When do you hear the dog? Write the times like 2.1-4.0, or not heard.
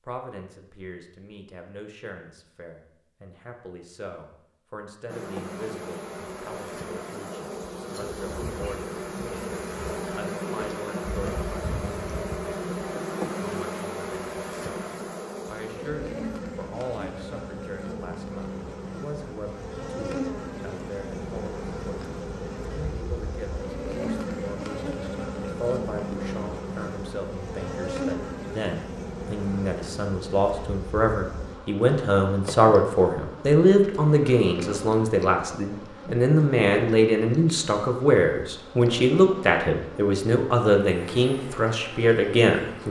not heard.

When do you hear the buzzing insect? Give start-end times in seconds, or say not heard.
5.0-42.8.